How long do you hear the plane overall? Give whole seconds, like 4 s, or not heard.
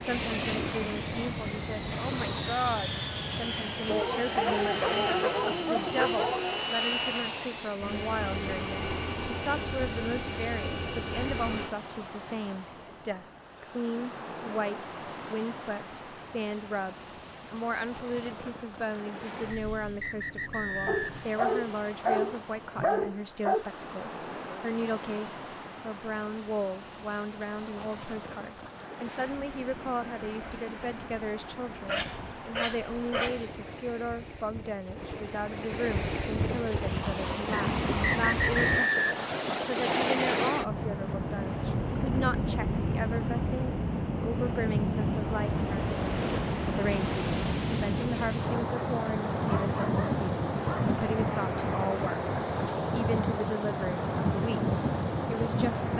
12 s.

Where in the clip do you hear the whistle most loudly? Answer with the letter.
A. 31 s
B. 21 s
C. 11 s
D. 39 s
D.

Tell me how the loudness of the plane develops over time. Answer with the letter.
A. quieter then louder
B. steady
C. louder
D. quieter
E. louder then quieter
B.